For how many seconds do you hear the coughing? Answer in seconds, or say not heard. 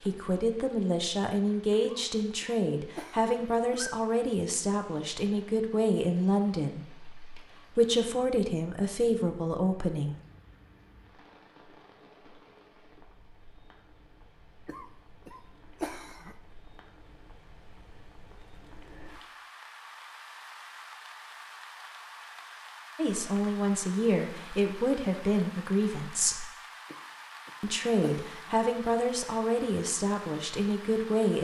5 s.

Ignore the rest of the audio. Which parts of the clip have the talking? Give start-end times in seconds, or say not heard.
0.0-10.2, 22.9-26.4, 27.6-31.3.